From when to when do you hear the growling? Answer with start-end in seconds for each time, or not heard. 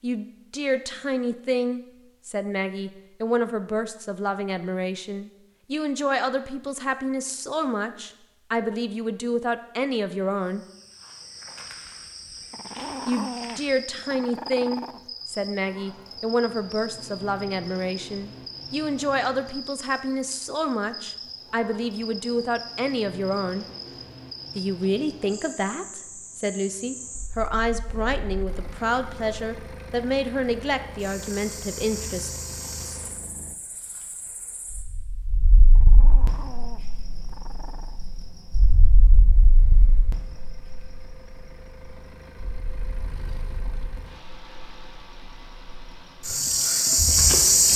12.5-15.0, 35.8-38.0.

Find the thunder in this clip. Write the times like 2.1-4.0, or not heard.
not heard.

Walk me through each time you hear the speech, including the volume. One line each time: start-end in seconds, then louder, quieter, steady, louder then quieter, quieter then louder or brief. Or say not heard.
0.0-10.7 steady
13.1-23.6 steady
24.6-32.3 steady.